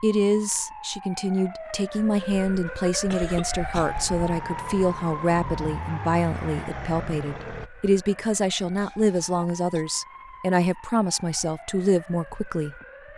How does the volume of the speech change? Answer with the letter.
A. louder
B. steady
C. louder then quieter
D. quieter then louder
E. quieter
B.